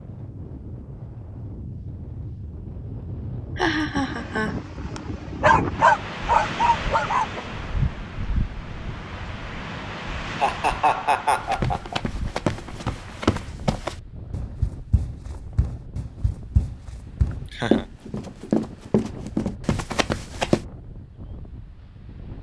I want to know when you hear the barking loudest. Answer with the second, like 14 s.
6 s.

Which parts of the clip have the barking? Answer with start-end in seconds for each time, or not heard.
5.4-7.4.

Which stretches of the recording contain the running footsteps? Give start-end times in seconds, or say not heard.
11.3-20.6.